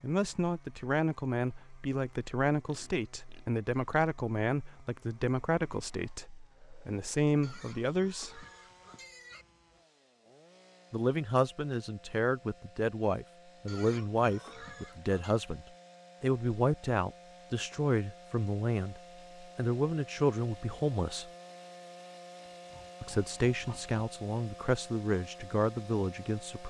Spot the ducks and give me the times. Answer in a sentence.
You can't hear the ducks here.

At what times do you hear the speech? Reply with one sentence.
The speech can be heard from 0.0 to 8.4 s, from 10.9 to 21.3 s and from 23.0 to 26.6 s.